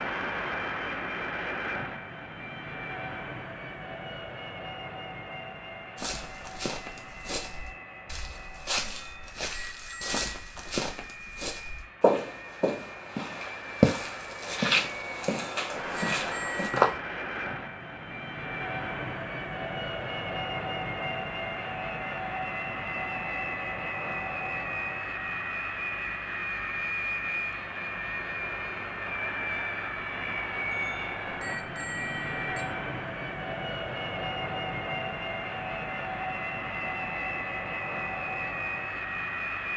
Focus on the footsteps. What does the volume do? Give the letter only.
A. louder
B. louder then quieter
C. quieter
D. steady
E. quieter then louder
A.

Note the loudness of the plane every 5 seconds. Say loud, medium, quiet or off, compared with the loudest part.
loud, medium, medium, loud, loud, loud, loud, loud.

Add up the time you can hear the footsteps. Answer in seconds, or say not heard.
11 s.